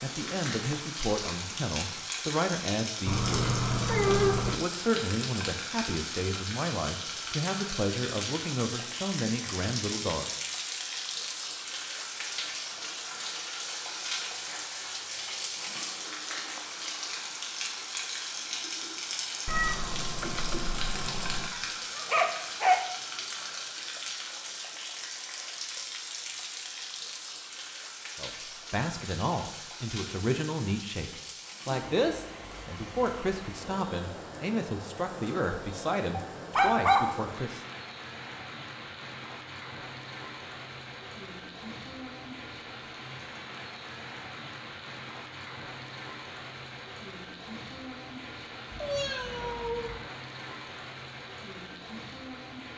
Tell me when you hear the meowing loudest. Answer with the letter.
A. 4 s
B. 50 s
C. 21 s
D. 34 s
A.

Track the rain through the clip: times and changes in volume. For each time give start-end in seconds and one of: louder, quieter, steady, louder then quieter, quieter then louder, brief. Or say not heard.
0.0-52.7 quieter.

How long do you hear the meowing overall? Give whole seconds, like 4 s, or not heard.
5 s.